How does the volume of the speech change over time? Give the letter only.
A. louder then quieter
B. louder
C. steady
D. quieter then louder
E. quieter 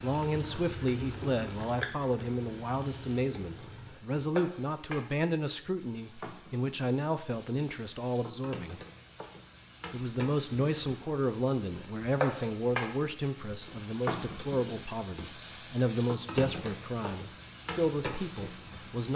C.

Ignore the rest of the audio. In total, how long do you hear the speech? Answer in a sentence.
The speech can be heard for 18 seconds in total.